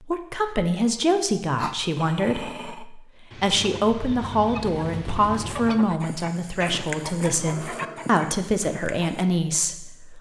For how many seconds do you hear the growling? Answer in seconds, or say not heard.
3 s.